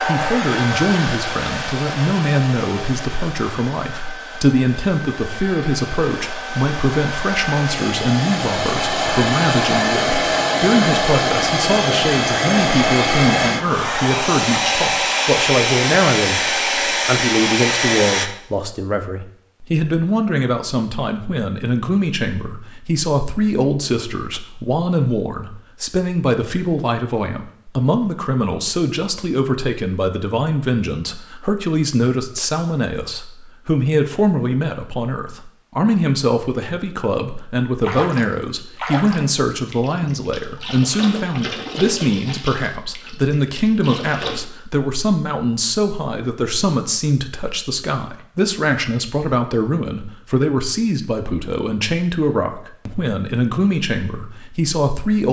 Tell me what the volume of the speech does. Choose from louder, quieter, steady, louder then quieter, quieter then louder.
steady.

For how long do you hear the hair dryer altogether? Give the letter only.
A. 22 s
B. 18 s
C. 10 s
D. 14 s
B.